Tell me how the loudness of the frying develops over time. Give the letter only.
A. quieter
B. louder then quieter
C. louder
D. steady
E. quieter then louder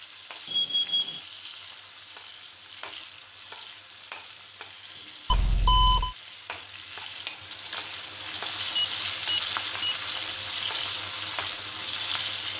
C.